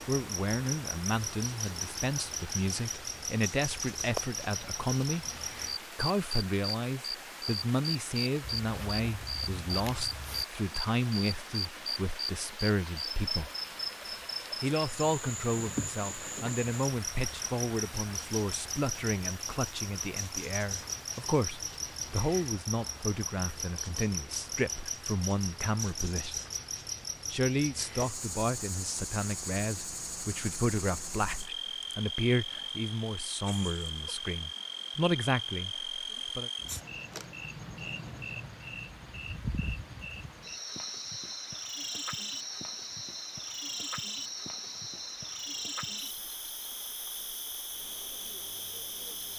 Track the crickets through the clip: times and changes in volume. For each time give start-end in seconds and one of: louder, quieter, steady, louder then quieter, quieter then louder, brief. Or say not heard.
0.0-49.3 steady.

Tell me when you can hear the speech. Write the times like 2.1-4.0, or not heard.
0.1-5.2, 6.0-13.5, 14.6-26.4, 27.3-36.5.